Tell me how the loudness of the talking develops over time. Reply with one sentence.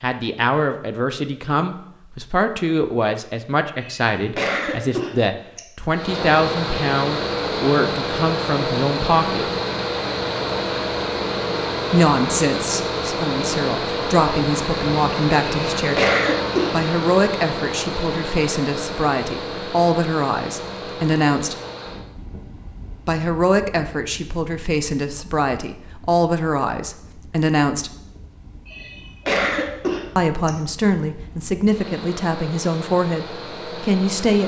The volume of the talking stays about the same.